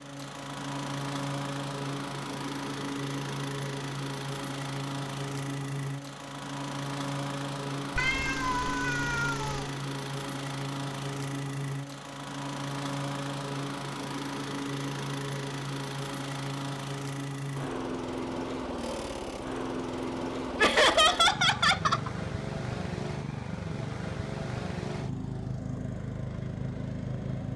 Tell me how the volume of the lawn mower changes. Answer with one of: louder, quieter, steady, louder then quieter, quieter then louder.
steady.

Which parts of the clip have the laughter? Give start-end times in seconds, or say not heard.
20.6-22.1.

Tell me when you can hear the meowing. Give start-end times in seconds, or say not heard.
8.0-9.7.